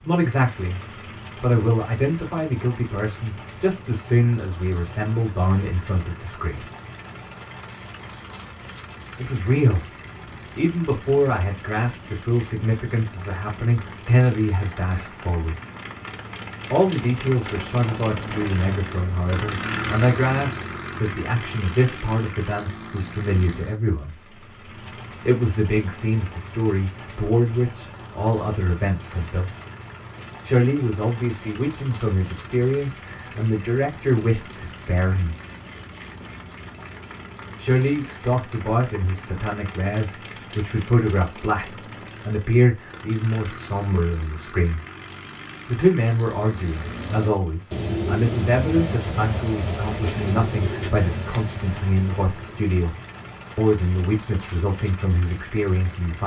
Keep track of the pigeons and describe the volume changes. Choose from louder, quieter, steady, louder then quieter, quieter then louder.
quieter.